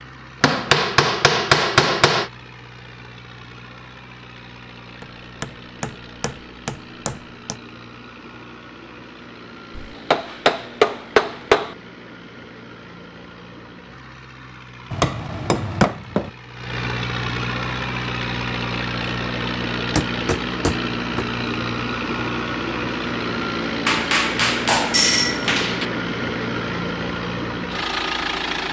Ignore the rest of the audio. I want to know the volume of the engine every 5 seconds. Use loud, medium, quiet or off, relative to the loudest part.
quiet, quiet, quiet, loud, loud, loud.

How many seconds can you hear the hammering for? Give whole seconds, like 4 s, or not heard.
12 s.